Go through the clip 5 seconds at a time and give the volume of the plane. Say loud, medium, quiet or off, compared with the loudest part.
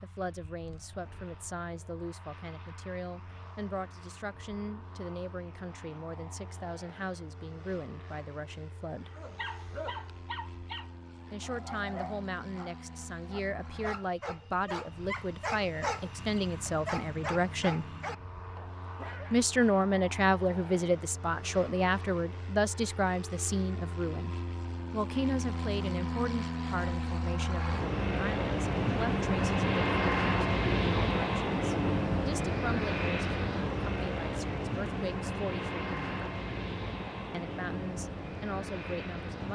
quiet, quiet, quiet, quiet, quiet, loud, loud, medium.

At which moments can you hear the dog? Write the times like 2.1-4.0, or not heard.
9.2-19.4.